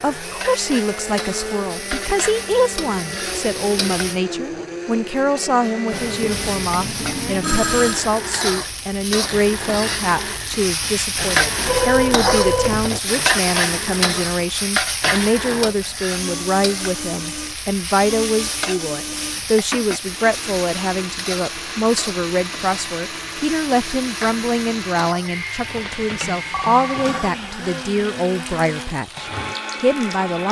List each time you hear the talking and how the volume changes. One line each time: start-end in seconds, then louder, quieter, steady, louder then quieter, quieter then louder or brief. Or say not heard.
0.0-30.4 steady.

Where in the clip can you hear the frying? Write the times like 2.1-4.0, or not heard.
0.0-4.2, 5.8-30.2.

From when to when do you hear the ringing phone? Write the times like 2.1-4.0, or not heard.
5.9-8.0, 11.7-12.9, 25.6-27.3.